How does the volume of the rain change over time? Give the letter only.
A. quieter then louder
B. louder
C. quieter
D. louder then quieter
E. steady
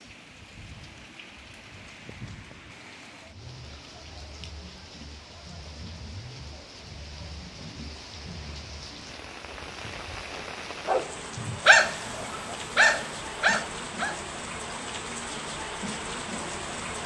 B.